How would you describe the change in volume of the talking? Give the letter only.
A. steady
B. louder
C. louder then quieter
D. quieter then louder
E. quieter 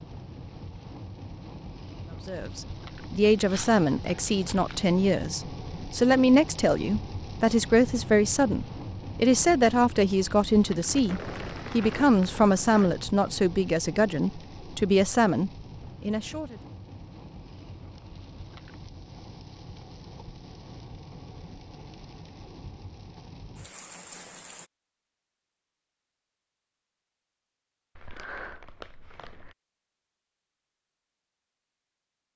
A.